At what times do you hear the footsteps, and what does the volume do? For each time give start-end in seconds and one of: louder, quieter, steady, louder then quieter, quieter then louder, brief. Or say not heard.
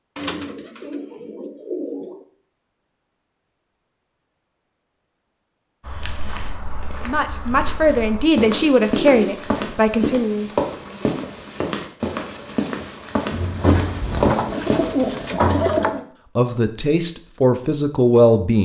5.8-14.9 louder.